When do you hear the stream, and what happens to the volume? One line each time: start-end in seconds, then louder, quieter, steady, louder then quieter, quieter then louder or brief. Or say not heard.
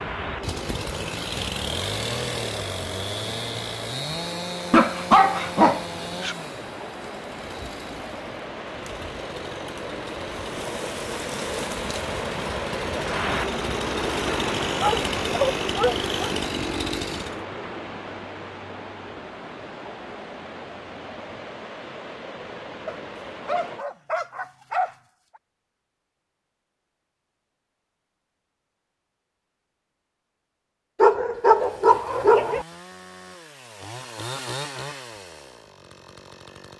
0.0-23.9 louder then quieter.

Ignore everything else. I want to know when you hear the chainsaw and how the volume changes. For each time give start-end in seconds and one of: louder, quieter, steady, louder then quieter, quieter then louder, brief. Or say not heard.
0.1-17.4 quieter then louder
31.4-36.7 louder then quieter.